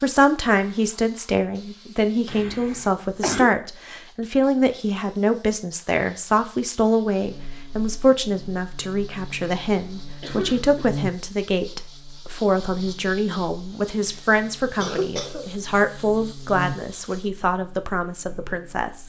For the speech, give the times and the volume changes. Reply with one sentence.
The speech can be heard from 0.0 to 19.0 s, at a steady volume.